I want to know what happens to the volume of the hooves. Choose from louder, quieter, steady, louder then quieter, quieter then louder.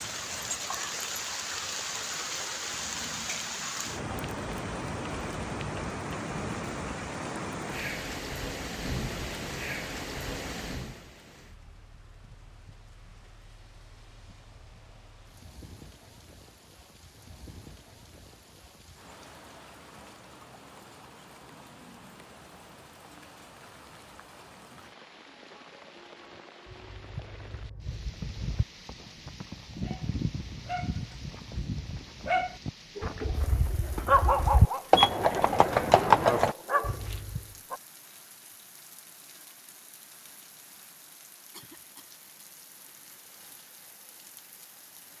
louder.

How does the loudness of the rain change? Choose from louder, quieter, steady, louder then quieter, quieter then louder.
quieter.